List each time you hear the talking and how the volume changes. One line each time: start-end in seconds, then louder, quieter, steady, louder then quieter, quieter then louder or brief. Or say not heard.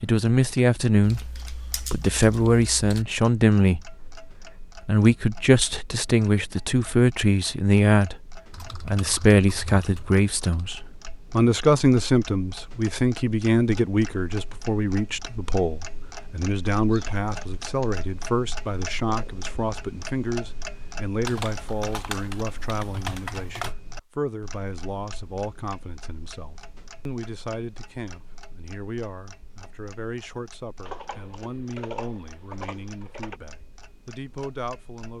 0.0-8.2 steady
8.8-35.1 quieter.